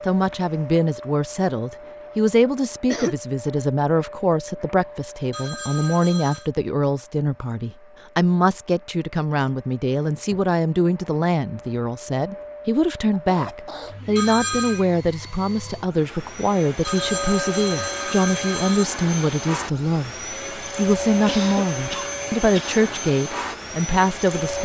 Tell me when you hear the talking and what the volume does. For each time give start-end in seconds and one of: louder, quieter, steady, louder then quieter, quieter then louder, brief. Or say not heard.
0.1-24.5 steady.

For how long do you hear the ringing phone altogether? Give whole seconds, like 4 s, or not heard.
4 s.